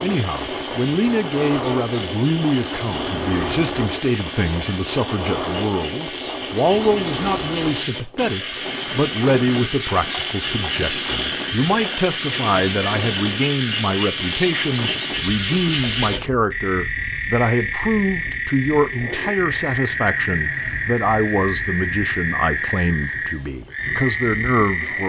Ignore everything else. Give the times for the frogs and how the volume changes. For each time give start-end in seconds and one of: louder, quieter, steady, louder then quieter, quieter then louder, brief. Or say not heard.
0.0-25.0 louder.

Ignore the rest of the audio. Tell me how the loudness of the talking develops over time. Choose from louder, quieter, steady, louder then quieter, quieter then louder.
steady.